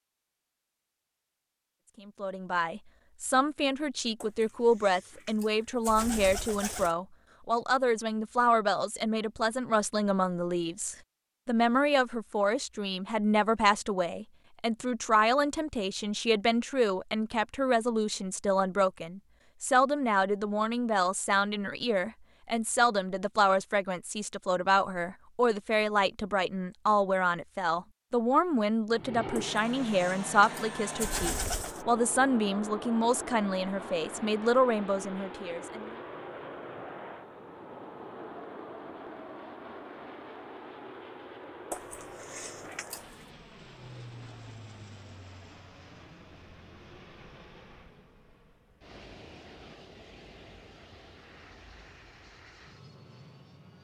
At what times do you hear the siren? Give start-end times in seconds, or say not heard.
not heard.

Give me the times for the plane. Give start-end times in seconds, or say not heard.
28.9-53.7.